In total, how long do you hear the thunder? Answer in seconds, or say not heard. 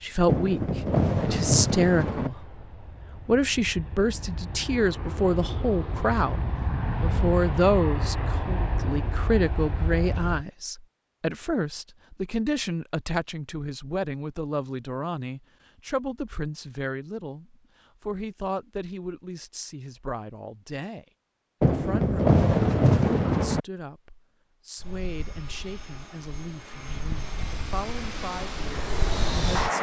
4 s.